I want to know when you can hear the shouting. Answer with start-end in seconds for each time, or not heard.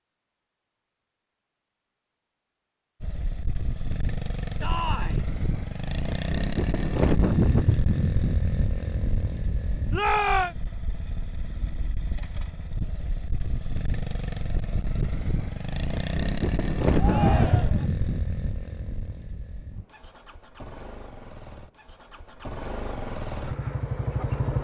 4.6-5.2, 9.9-10.6, 16.9-17.9.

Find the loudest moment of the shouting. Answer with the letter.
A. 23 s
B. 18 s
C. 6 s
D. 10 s
D.